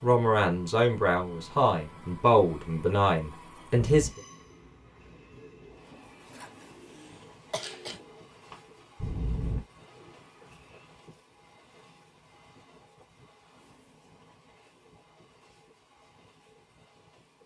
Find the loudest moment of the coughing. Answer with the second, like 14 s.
8 s.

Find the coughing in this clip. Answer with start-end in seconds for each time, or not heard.
6.3-8.0.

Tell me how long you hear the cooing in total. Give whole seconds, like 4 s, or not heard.
7 s.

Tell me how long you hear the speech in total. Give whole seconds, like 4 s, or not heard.
4 s.